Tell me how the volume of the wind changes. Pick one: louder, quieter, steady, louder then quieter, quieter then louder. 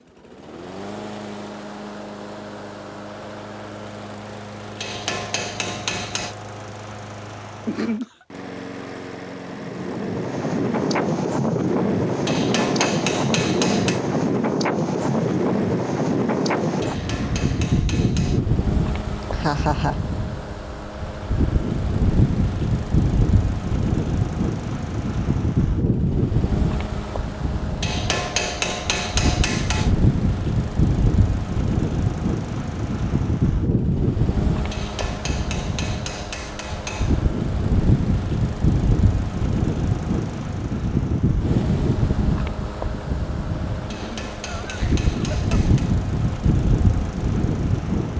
steady.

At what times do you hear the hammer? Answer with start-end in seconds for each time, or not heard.
4.8-6.3, 12.2-14.0, 16.8-18.4, 27.8-29.9, 34.7-37.3, 43.9-46.0.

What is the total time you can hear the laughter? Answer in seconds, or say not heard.
3 s.